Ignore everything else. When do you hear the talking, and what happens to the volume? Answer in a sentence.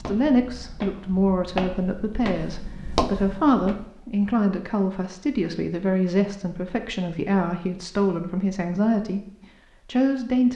You can hear the talking from 0.0 to 9.2 s, at a steady volume; and briefly from 9.8 to 10.5 s.